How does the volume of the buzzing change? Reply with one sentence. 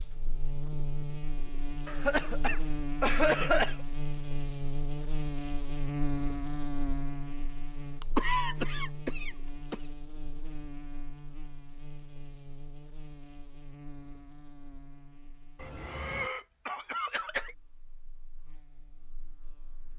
The volume of the buzzing goes down.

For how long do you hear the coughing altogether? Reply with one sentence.
The coughing can be heard for 6 seconds in total.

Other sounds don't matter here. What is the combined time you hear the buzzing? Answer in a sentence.
You can hear the buzzing for 20 seconds altogether.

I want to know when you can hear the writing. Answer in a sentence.
You can't hear the writing here.